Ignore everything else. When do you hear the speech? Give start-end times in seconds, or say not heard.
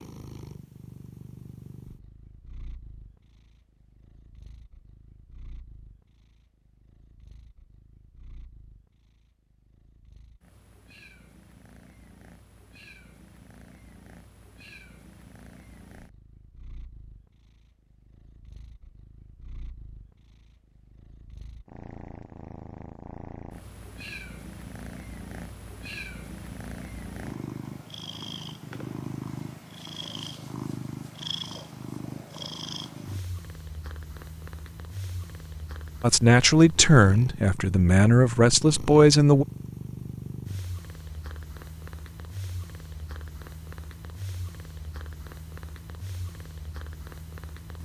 36.0-39.5.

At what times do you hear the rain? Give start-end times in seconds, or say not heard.
not heard.